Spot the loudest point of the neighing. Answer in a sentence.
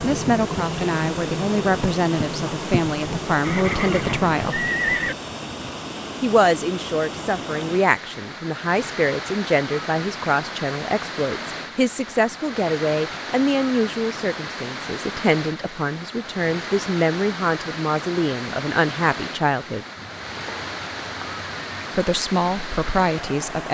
The loudest moment of the neighing is at 5 seconds.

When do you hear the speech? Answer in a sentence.
You can hear the speech from 0.0 to 4.6 s, from 6.2 to 19.9 s and from 21.9 to 23.6 s.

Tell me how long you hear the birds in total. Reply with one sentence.
The birds can't be heard in this clip.